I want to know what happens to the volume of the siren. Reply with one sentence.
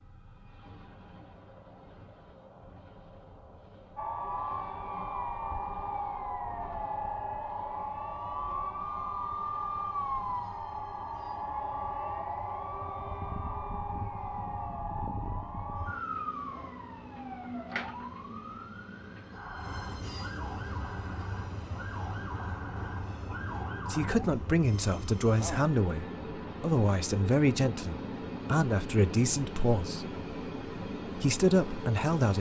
The volume of the siren goes down.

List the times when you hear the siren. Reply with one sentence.
You can hear the siren from 4.0 to 24.4 s.